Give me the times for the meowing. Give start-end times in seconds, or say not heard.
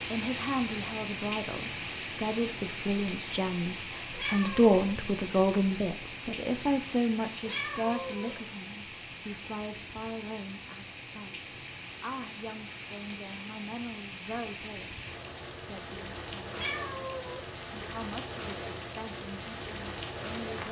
4.1-4.7, 7.5-8.4, 16.5-17.5.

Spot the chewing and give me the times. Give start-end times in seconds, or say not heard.
not heard.